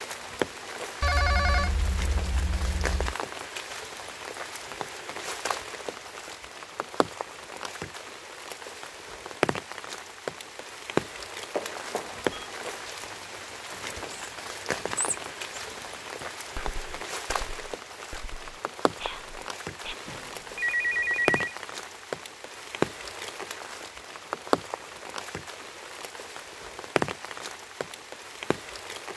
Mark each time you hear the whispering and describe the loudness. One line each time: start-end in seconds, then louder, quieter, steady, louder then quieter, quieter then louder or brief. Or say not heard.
13.7-19.9 quieter then louder.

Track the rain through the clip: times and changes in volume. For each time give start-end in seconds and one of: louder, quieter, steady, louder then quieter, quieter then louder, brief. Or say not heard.
0.0-29.1 steady.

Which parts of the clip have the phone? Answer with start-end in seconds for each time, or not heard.
1.0-3.1, 11.6-12.4, 20.1-21.6.